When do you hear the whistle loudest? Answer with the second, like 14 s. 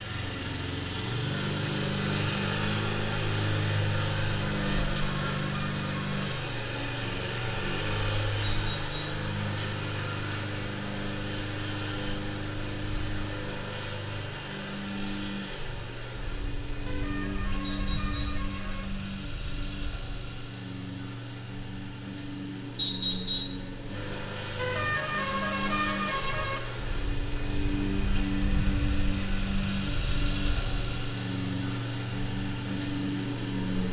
23 s.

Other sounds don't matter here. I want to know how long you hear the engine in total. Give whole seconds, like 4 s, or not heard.
34 s.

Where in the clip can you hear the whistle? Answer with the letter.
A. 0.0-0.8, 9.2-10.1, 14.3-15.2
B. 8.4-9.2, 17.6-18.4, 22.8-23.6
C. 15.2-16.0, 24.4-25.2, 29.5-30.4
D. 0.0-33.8
B.